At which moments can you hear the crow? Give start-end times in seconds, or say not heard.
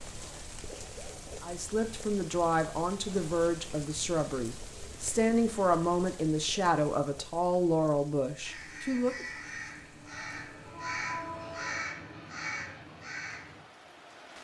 8.4-13.7.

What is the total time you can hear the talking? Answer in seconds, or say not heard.
8 s.